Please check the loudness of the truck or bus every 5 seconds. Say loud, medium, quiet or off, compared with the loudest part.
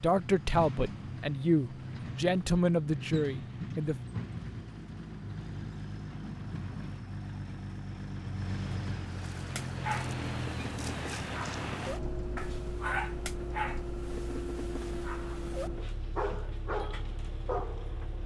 loud, loud, loud, medium.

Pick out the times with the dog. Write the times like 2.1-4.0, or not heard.
9.3-17.9.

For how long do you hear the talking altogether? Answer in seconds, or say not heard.
4 s.